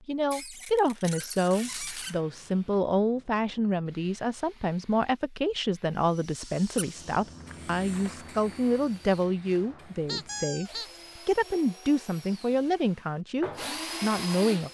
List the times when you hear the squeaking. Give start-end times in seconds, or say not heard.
0.3-2.1, 10.1-11.0.